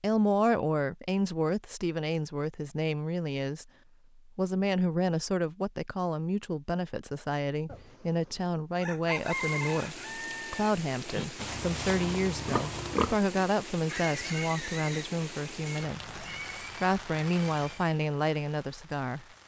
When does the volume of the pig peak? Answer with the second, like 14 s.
13 s.